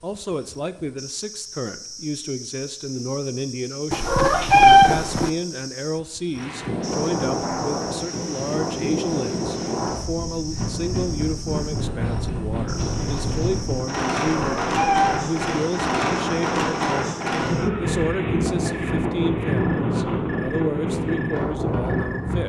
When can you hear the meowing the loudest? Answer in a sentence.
The volume of the meowing peaks at 5 seconds.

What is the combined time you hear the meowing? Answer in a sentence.
You can hear the meowing for 3 seconds altogether.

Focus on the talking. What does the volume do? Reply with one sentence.
The volume of the talking stays about the same.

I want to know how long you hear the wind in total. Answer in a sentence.
The wind can be heard for 16 seconds in total.